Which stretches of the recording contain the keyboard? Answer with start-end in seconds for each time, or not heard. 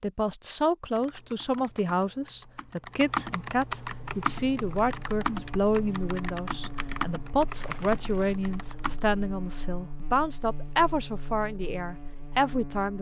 0.8-9.0.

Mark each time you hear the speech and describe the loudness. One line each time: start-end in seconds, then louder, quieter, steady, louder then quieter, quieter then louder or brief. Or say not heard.
0.0-12.9 steady.